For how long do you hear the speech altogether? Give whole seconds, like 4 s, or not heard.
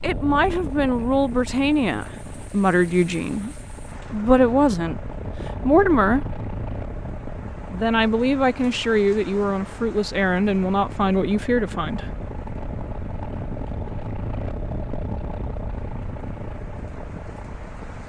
11 s.